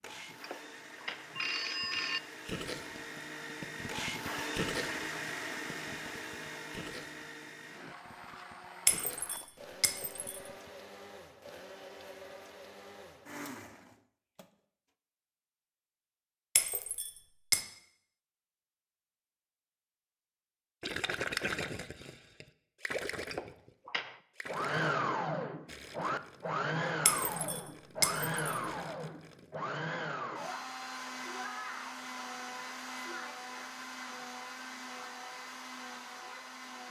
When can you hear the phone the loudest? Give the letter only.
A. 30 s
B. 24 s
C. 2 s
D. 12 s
C.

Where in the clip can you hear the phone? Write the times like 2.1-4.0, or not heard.
0.4-2.2, 23.3-24.2.